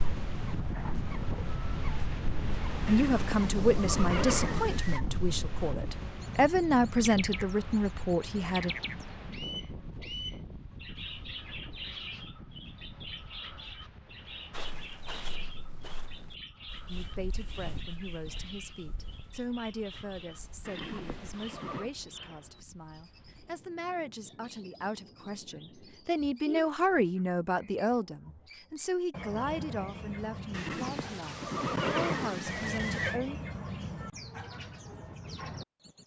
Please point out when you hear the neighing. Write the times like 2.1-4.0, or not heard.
2.9-5.0, 20.6-21.9, 30.5-33.2.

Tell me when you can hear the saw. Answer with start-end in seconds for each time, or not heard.
not heard.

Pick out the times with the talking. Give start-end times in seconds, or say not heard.
2.9-8.7, 16.9-33.4.